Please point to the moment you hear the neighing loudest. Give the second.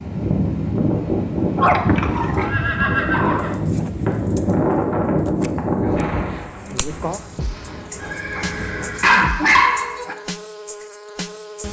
3 s.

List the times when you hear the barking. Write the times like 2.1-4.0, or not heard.
1.6-3.5, 8.3-10.2.